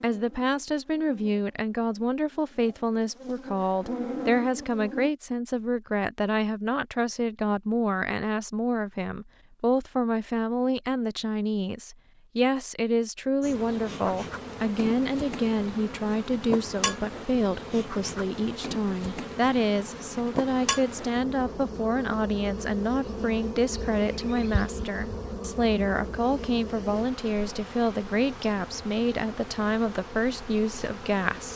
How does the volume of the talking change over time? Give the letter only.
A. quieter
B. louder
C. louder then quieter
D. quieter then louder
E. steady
E.